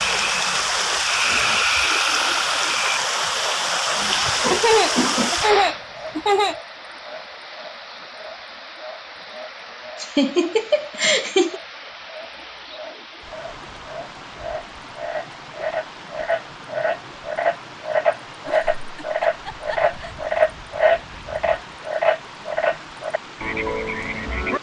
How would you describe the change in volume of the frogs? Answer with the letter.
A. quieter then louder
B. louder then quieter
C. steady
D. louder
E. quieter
A.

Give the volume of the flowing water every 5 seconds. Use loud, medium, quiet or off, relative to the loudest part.
loud, medium, quiet, quiet, quiet.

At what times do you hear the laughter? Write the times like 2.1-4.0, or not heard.
4.0-6.5, 10.0-11.6, 18.4-20.3.